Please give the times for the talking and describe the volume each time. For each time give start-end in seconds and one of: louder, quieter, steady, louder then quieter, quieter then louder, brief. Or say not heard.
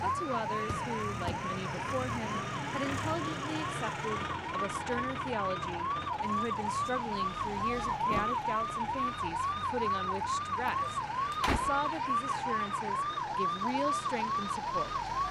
0.0-15.0 steady.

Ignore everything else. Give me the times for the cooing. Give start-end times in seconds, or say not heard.
not heard.